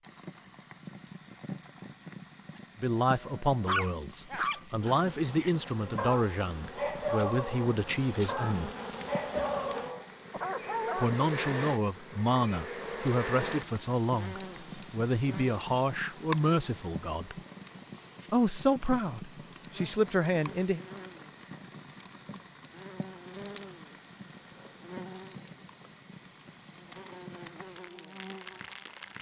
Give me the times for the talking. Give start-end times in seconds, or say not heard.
2.8-8.7, 10.9-17.4, 18.3-20.8.